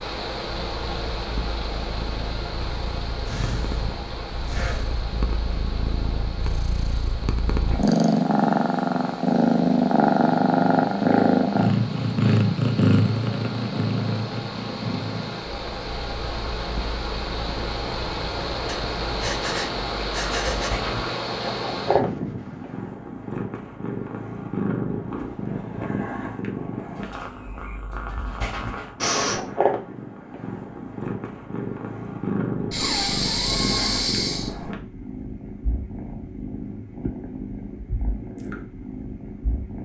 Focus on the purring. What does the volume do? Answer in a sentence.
The loudness of the purring goes up, then down.